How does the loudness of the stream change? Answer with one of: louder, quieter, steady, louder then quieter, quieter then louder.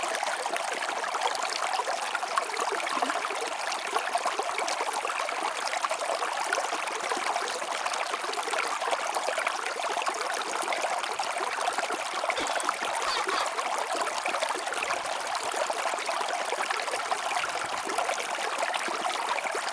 steady.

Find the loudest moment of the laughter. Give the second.
13 s.